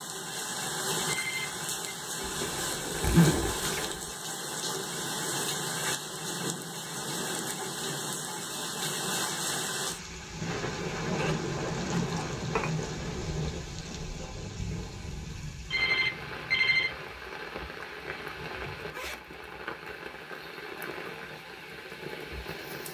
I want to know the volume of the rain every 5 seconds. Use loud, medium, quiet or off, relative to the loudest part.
loud, loud, loud, medium, medium.